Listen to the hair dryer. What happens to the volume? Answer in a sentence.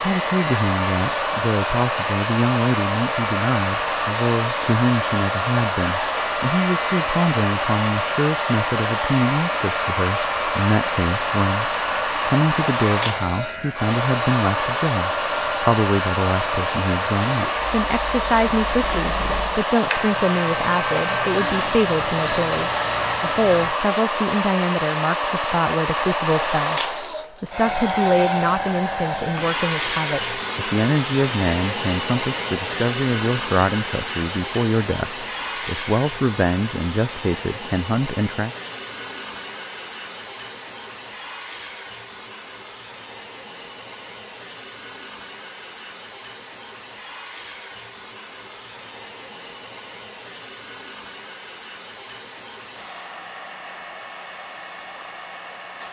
The volume of the hair dryer goes down.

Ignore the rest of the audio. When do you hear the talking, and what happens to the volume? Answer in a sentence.
The talking can be heard from 0.0 to 38.5 s, at a steady volume.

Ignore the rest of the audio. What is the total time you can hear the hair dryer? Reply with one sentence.
You can hear the hair dryer for 56 seconds altogether.